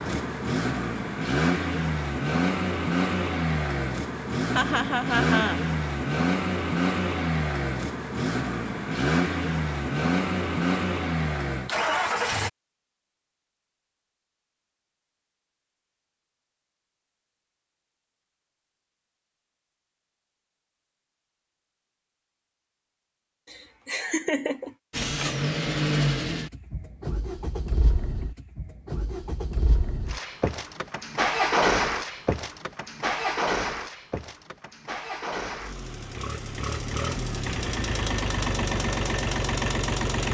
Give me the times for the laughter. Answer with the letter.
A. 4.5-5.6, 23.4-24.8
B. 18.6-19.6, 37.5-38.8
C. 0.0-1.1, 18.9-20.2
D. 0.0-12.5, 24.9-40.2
A.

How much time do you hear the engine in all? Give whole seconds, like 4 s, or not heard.
28 s.